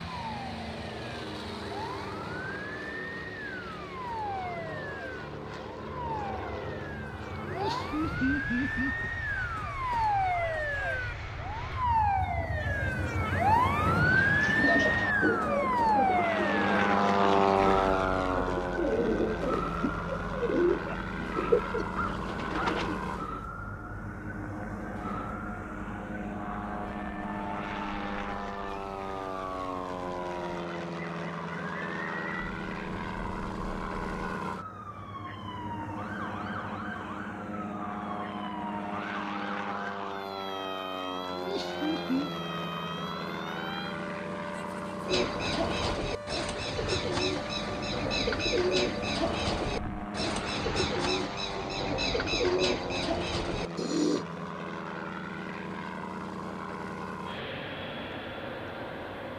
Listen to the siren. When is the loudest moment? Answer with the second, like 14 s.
14 s.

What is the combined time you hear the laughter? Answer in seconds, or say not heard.
3 s.